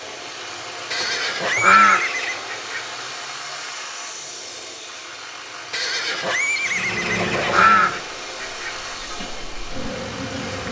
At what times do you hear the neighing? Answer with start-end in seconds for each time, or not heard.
0.9-2.4, 5.7-7.8.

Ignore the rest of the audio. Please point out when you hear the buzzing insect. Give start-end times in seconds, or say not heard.
6.7-10.6.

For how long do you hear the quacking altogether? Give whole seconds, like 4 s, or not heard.
4 s.